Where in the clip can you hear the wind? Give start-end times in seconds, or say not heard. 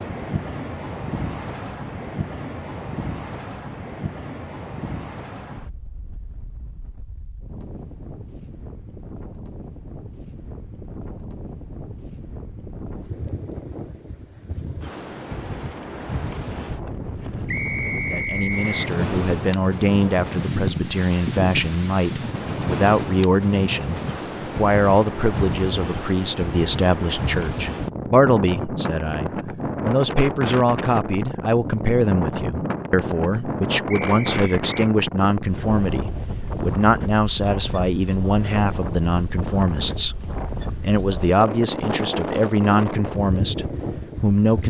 0.0-44.6.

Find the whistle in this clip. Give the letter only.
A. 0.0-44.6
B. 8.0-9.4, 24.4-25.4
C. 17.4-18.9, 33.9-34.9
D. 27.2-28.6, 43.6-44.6
C.